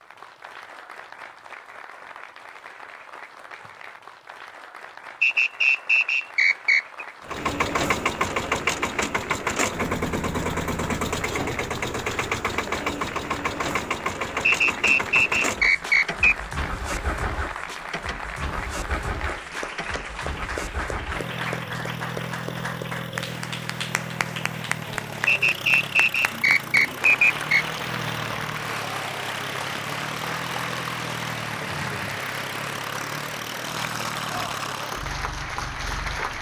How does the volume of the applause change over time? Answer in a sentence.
The loudness of the applause goes up.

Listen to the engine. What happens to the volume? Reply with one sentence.
The volume of the engine goes down.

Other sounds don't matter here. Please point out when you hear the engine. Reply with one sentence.
The engine can be heard from 7.2 to 36.3 s.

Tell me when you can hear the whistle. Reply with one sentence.
You can hear the whistle from 5.2 to 7.0 s, from 14.4 to 16.4 s and from 25.2 to 27.6 s.